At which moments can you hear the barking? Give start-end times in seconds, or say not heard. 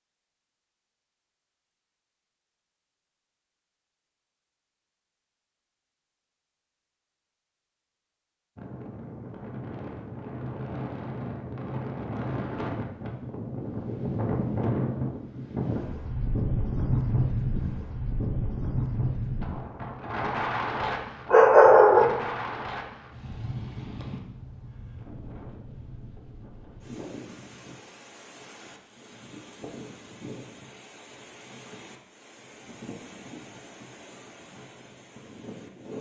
20.8-22.1.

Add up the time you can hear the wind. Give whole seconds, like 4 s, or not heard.
27 s.